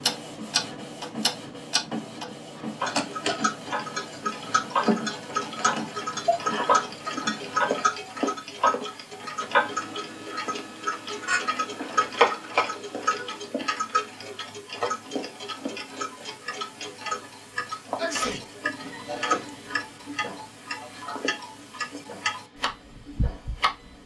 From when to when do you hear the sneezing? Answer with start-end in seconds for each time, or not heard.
6.2-6.8, 17.9-18.4.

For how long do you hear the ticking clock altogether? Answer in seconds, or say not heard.
24 s.